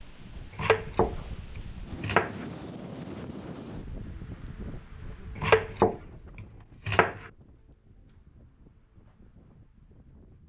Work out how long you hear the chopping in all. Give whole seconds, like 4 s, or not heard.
4 s.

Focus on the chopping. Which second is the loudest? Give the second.
6 s.